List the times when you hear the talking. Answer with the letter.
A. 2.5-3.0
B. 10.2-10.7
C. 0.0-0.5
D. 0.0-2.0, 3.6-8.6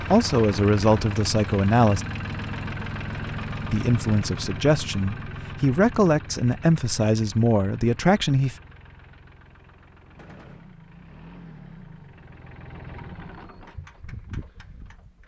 D.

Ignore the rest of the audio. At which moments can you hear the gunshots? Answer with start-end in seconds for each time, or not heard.
10.2-10.7.